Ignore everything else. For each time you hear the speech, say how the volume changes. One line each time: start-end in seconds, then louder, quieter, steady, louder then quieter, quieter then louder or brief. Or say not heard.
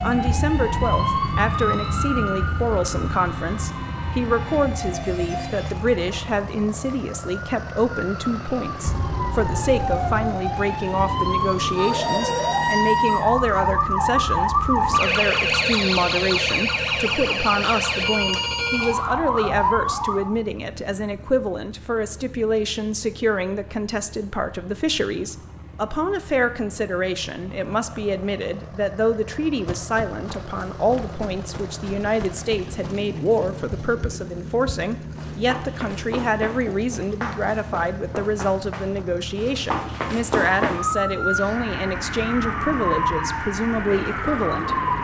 0.0-44.8 steady.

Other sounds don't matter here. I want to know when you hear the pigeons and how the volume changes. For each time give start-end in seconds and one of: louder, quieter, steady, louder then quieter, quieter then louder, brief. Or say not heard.
not heard.